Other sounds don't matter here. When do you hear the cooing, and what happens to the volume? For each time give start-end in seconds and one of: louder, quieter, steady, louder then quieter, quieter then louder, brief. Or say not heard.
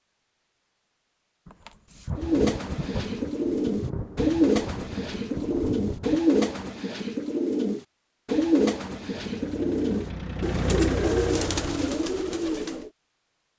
2.1-12.9 steady.